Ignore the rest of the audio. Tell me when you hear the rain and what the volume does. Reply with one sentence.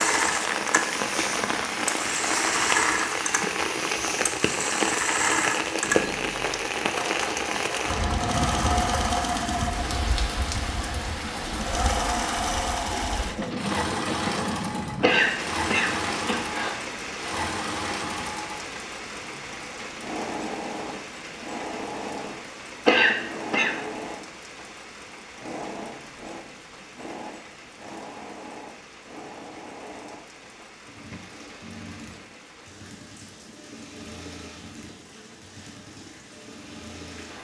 You can hear the rain from 0.0 to 37.3 s, getting quieter.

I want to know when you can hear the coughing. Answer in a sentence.
You can hear the coughing from 15.0 to 16.7 s and from 22.9 to 23.8 s.